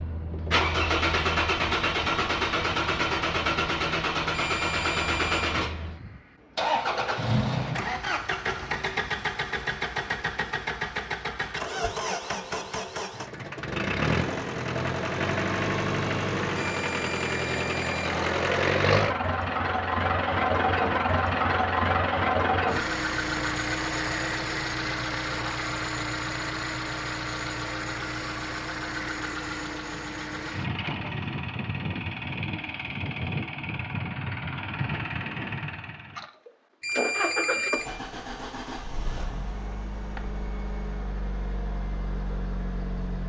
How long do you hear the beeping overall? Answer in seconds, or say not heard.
4 s.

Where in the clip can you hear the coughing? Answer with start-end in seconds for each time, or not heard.
not heard.